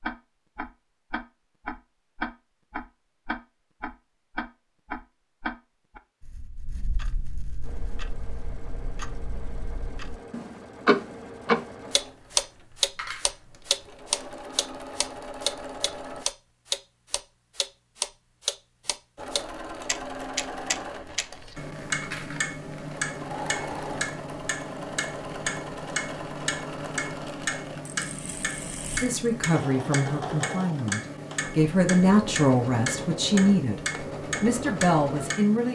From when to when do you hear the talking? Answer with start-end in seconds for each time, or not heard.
29.0-35.6.